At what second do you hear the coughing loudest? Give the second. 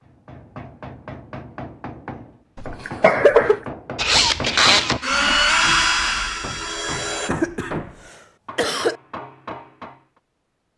3 s.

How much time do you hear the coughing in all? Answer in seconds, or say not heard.
3 s.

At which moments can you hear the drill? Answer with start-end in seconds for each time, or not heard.
4.0-7.3.